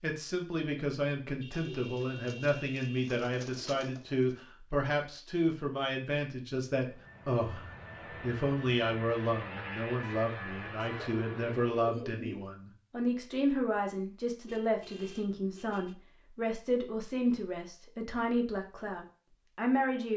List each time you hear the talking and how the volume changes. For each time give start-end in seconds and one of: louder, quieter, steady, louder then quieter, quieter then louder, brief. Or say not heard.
0.0-20.1 steady.